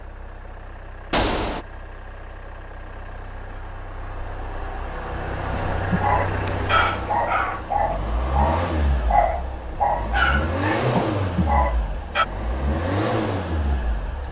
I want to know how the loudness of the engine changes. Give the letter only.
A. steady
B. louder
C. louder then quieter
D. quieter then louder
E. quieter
B.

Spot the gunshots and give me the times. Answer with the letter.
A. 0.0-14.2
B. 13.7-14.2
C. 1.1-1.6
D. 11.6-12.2
C.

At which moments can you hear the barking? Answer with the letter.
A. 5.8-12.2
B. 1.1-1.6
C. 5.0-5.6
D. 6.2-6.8
A.